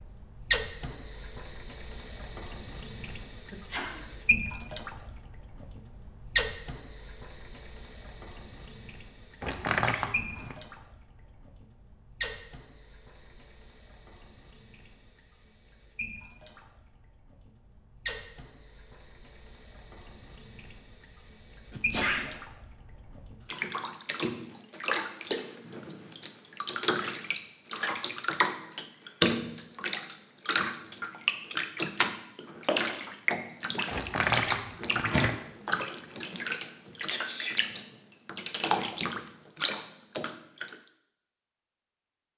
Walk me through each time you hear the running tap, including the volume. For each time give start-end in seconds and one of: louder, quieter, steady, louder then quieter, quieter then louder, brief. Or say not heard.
0.0-40.8 quieter then louder.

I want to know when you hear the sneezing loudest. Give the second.
22 s.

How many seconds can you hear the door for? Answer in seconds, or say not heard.
3 s.